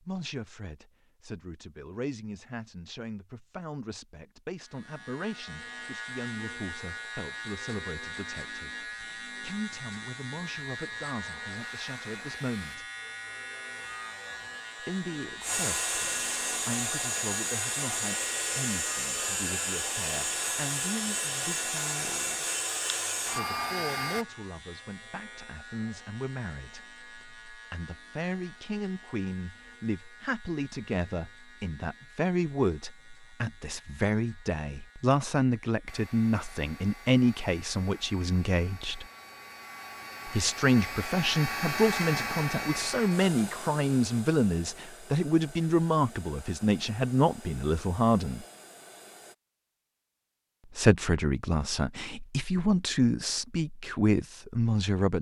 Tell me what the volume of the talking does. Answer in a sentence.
The volume of the talking goes up.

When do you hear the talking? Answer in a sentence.
The talking can be heard from 0.0 to 12.8 s, from 14.8 to 22.4 s, from 23.2 to 39.0 s, from 40.2 to 48.5 s and from 50.8 to 55.1 s.